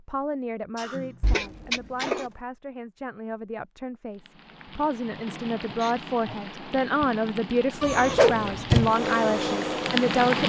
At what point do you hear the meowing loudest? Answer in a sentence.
The loudest moment of the meowing is at 8 seconds.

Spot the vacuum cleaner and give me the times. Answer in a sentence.
The vacuum cleaner can be heard from 8.8 to 10.2 s.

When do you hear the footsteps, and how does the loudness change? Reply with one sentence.
The footsteps can't be heard in this clip.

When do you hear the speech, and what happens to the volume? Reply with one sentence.
The speech can be heard from 0.0 to 10.4 s, getting louder.